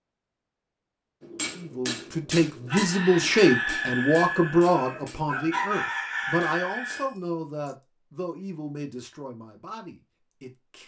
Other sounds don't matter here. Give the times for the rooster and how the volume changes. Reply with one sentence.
The rooster can be heard from 2.6 to 7.1 s, getting quieter then louder.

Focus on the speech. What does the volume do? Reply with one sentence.
The loudness of the speech goes down.